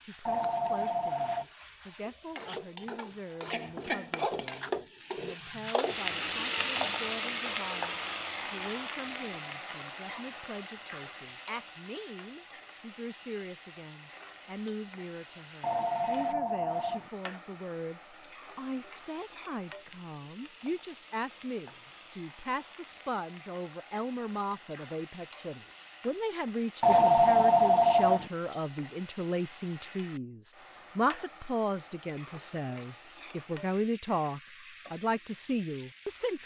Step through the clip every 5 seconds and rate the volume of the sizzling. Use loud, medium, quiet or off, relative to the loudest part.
medium, loud, quiet, quiet, quiet, quiet, quiet, quiet.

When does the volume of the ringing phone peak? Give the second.
27 s.